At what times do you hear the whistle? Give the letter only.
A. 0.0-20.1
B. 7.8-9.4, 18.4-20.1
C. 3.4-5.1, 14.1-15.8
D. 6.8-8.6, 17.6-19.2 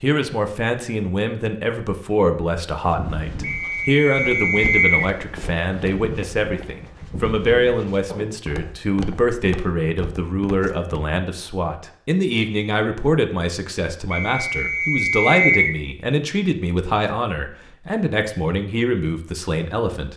C.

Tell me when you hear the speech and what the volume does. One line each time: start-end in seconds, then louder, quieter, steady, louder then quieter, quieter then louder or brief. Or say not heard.
0.0-20.1 steady.